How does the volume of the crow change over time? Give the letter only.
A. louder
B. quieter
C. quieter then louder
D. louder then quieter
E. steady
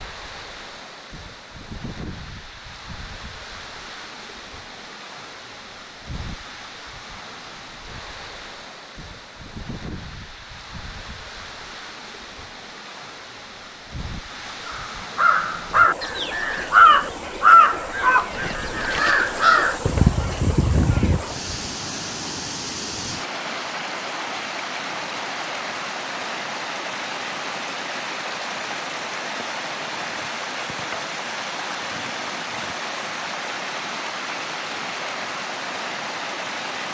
D.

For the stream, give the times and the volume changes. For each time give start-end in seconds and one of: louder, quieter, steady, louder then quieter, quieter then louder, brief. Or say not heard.
0.0-36.8 louder.